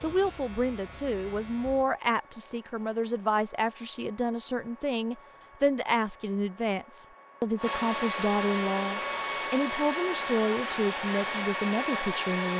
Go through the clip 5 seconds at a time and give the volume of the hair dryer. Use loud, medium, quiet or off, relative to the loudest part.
quiet, loud, loud.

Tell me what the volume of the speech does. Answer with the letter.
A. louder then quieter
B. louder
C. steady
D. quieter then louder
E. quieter
C.